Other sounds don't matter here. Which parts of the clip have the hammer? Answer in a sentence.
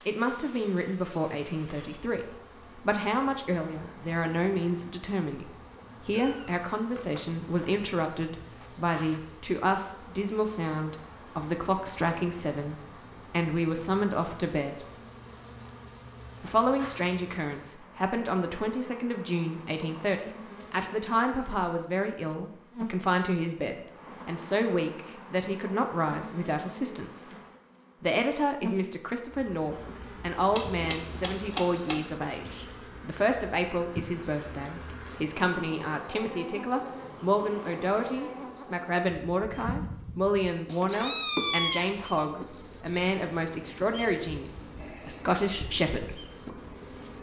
The hammer can be heard from 30.5 to 32.0 s.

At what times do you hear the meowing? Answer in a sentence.
The meowing can be heard from 6.1 to 7.8 s and from 40.7 to 41.9 s.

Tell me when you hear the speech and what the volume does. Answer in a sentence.
The speech can be heard from 0.1 to 14.8 s, at a steady volume; from 16.4 to 27.2 s, at a steady volume; and from 28.0 to 46.2 s, at a steady volume.